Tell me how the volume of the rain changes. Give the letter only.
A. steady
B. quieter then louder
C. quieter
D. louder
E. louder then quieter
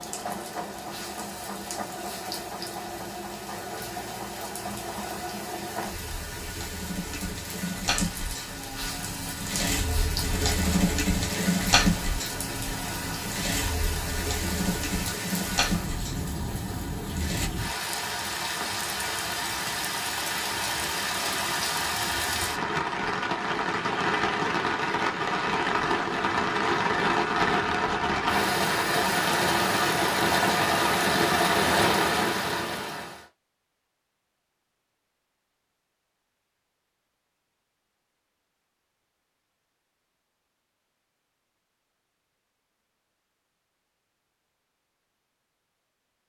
D.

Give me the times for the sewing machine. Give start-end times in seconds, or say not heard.
0.0-17.5.